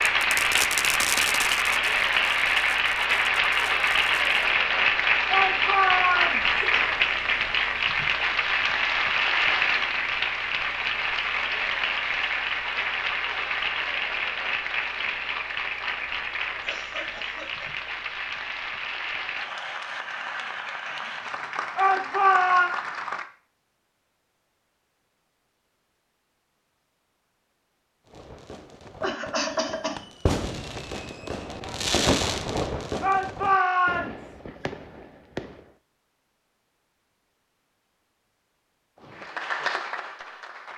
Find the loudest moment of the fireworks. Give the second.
32 s.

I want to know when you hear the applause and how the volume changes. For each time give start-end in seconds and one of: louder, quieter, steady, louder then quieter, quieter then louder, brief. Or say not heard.
0.0-23.2 quieter
39.0-40.7 brief.